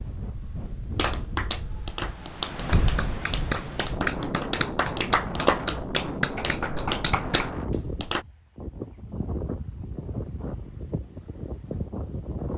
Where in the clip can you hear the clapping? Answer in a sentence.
The clapping can be heard from 0.9 to 8.2 s.